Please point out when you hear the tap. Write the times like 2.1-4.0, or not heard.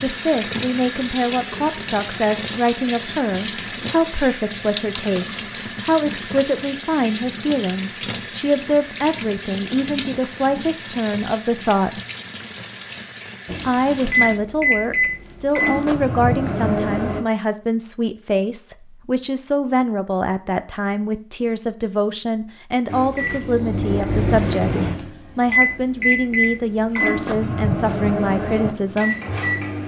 0.0-14.4.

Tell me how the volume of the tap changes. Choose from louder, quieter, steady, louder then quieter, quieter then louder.
quieter.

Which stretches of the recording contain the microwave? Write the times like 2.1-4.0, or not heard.
13.4-17.2, 22.9-29.8.